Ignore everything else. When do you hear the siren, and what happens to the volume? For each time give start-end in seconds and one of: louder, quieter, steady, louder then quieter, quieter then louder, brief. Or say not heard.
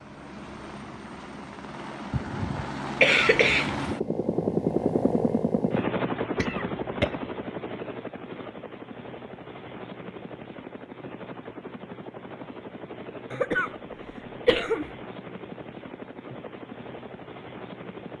not heard.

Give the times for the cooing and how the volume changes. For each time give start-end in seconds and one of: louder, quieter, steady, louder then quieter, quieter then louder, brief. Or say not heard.
not heard.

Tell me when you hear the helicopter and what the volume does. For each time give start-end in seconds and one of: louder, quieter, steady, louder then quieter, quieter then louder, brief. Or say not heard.
0.0-18.1 louder then quieter.